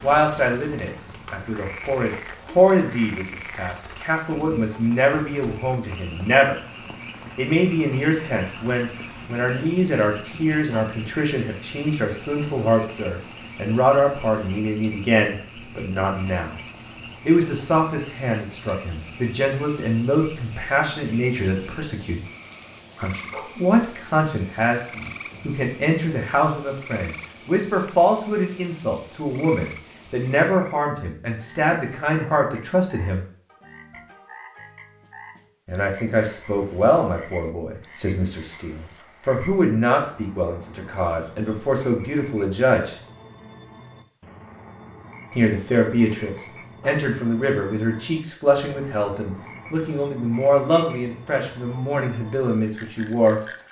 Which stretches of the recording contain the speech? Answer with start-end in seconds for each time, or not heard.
0.0-6.5, 7.3-16.6, 17.2-22.2, 23.0-33.2, 35.6-43.0, 45.4-53.4.